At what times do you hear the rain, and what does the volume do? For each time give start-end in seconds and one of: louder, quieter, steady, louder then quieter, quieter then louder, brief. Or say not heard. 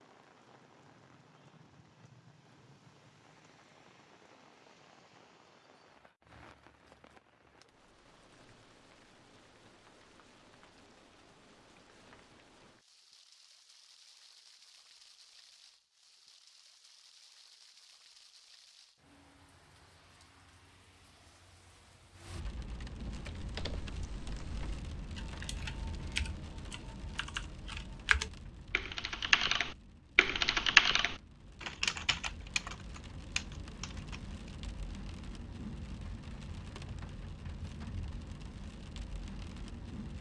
0.0-40.1 louder.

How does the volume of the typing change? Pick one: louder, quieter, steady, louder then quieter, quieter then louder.
louder then quieter.